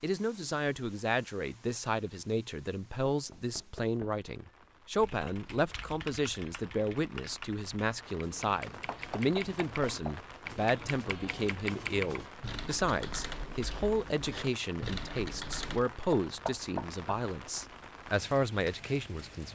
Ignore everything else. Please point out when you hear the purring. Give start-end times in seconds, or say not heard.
not heard.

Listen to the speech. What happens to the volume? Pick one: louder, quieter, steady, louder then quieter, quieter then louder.
steady.